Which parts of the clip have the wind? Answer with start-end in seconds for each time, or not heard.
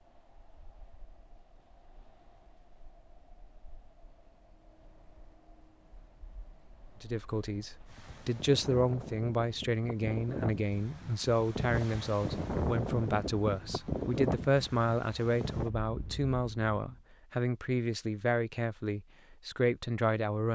0.0-17.0.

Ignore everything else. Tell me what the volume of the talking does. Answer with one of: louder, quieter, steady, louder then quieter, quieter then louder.
steady.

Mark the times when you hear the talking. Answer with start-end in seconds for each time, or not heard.
7.0-20.5.